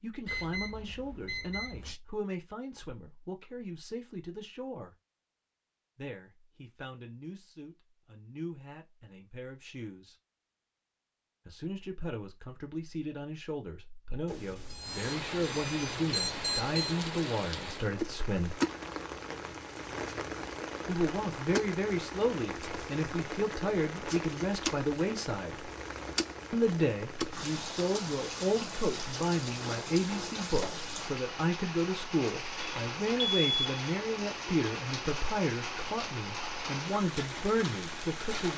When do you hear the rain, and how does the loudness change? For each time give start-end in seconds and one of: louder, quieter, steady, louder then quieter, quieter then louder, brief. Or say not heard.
14.8-38.5 steady.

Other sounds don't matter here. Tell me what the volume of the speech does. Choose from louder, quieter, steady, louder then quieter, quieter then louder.
louder.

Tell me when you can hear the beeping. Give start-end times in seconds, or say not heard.
0.2-2.0, 14.2-16.9, 32.6-33.6.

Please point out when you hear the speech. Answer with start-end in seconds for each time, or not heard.
0.0-5.0, 6.0-10.2, 11.4-18.6, 20.9-25.7, 26.5-38.5.